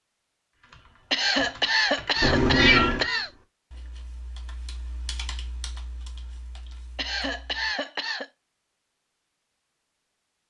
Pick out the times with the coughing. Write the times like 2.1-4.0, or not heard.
1.1-3.3, 7.0-8.3.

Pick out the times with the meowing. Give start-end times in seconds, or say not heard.
2.2-3.0.